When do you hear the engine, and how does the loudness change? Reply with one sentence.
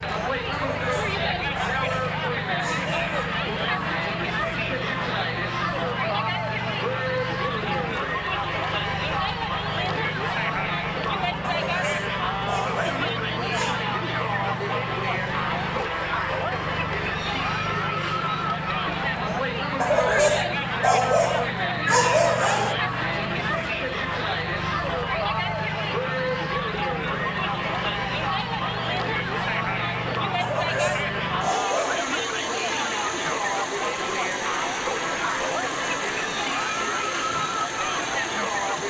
You can hear the engine from 0.0 to 38.8 s, at a steady volume.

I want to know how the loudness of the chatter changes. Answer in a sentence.
The loudness of the chatter stays about the same.